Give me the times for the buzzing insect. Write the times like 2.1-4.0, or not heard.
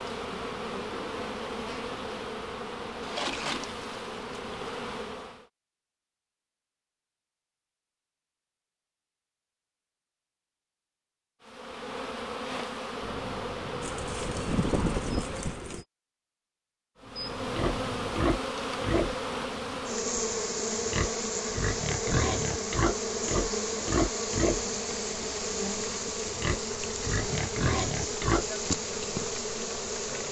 0.0-5.5, 11.4-15.8, 17.0-30.2.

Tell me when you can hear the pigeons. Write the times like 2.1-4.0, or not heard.
13.8-15.8.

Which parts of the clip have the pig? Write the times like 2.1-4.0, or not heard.
17.5-28.4.